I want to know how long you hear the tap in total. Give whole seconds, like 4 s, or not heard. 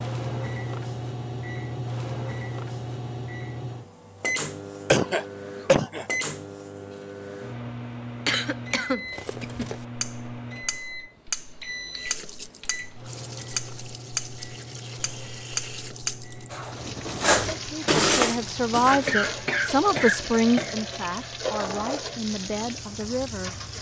12 s.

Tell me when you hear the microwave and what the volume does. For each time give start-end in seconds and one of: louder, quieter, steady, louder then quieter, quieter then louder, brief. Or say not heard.
0.0-23.7 quieter.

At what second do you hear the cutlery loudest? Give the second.
18 s.